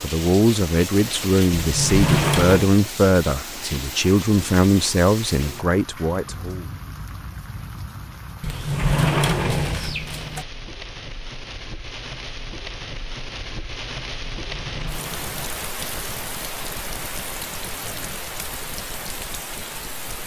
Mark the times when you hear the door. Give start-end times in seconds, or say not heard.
1.6-2.7, 8.4-10.4, 14.3-15.5.